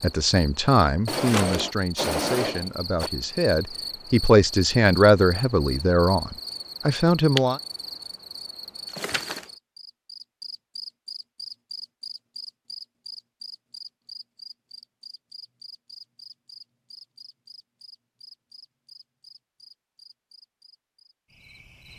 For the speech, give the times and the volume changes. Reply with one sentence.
The speech can be heard from 0.0 to 7.6 s, getting quieter then louder.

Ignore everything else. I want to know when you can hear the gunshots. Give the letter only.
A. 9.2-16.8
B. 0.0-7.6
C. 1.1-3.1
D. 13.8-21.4
C.